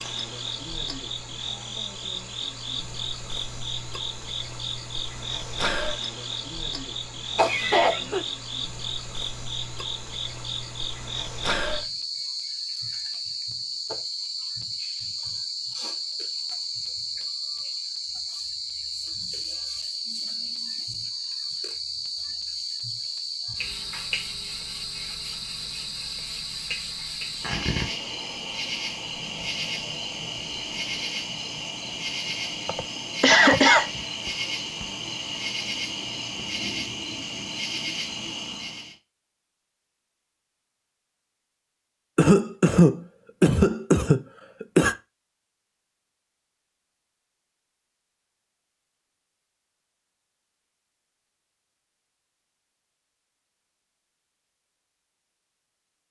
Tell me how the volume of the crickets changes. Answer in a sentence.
The volume of the crickets stays about the same.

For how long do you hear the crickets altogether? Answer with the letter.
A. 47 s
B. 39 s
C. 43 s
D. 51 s
B.